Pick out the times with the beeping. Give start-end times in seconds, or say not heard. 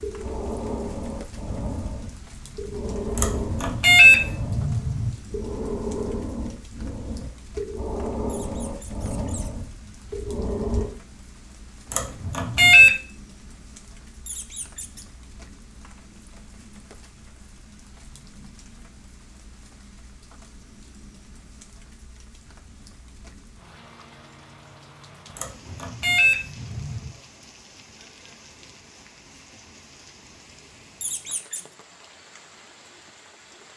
3.1-5.1, 11.9-12.9, 25.4-27.1.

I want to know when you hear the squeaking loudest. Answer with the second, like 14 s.
31 s.